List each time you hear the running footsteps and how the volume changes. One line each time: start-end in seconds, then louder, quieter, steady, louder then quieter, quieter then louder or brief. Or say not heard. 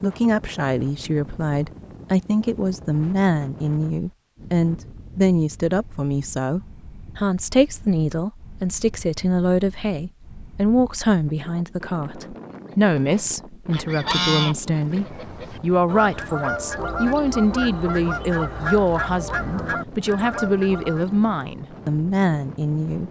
not heard.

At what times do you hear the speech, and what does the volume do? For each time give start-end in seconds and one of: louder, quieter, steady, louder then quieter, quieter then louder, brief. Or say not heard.
0.0-23.0 steady.